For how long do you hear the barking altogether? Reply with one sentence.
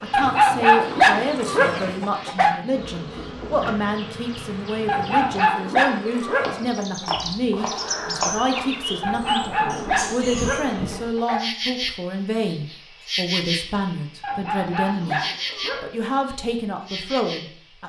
The barking can be heard for 9 seconds in total.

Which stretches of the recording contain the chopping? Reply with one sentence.
You can hear the chopping from 7.0 to 8.7 s.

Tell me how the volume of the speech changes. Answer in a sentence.
The loudness of the speech stays about the same.